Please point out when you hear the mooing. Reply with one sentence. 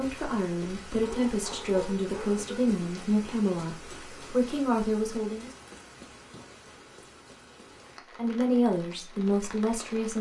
The mooing can't be heard in this clip.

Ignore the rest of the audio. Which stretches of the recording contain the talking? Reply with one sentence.
The talking can be heard from 0.0 to 5.5 s and from 8.2 to 10.1 s.